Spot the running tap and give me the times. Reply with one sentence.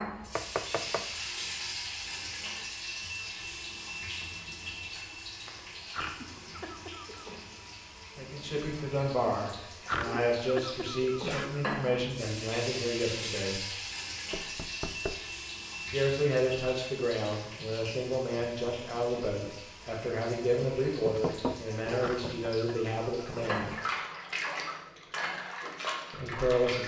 You can hear the running tap from 0.0 to 26.8 s.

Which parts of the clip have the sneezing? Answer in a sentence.
The sneezing can be heard from 5.9 to 7.3 s, from 9.8 to 11.8 s and from 21.9 to 23.7 s.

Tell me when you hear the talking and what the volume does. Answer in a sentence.
You can hear the talking from 8.2 to 13.6 s, at a steady volume; from 15.8 to 23.8 s, at a steady volume; and briefly from 26.1 to 26.8 s.